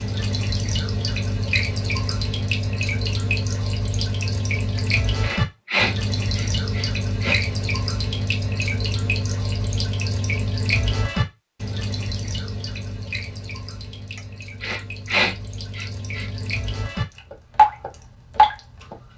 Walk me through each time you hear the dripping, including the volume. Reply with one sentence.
You can hear the dripping from 0.0 to 19.1 s, getting quieter then louder.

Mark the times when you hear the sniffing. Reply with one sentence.
The sniffing can be heard from 4.8 to 7.3 s and from 14.2 to 16.3 s.